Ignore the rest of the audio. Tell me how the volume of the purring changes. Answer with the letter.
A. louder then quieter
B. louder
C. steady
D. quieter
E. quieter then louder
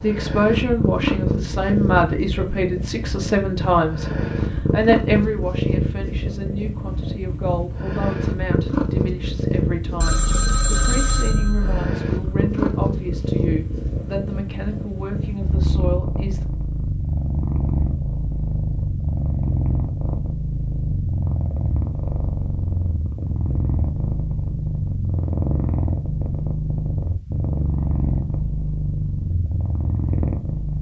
C.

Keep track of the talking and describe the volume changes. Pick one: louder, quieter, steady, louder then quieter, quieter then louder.
quieter.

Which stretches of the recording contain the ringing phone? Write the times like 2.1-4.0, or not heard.
10.0-11.9.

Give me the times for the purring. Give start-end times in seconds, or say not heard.
0.0-30.7.